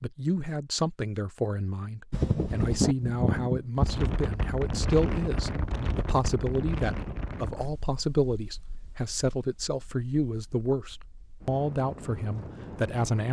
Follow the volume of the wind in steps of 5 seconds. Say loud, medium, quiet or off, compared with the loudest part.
loud, medium, quiet.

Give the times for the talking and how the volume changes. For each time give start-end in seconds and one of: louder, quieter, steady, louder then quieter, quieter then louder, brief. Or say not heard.
0.0-13.2 steady.